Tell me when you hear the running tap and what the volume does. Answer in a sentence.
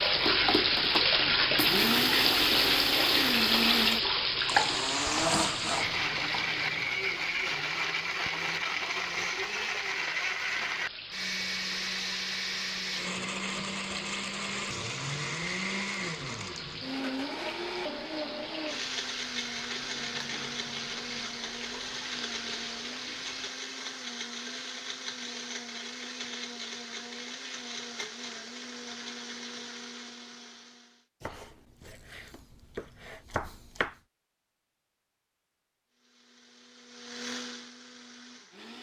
The running tap can be heard from 0.0 to 23.5 s, getting quieter.